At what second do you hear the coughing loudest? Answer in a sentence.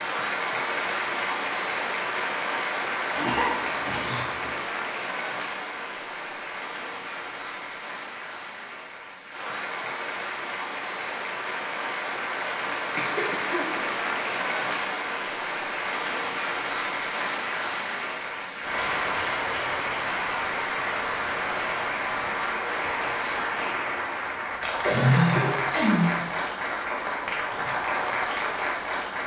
The loudest moment of the coughing is at 25 seconds.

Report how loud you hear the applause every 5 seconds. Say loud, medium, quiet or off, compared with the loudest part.
loud, medium, loud, loud, loud, loud.